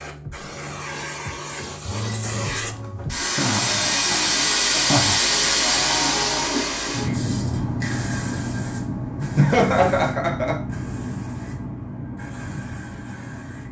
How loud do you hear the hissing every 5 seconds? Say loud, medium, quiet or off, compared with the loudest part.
loud, loud, medium.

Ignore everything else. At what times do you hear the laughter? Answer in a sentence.
The laughter can be heard from 3.2 to 5.2 s and from 9.3 to 10.6 s.